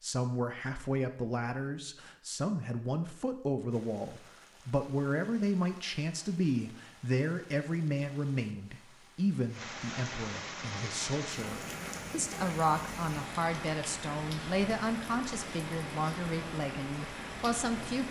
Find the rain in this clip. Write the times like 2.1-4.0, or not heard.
3.7-18.0.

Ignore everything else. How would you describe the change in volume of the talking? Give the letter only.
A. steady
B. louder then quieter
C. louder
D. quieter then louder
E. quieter
A.